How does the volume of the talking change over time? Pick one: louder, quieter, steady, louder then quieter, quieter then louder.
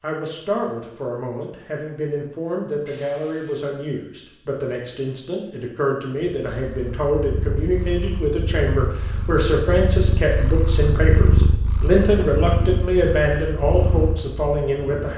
louder.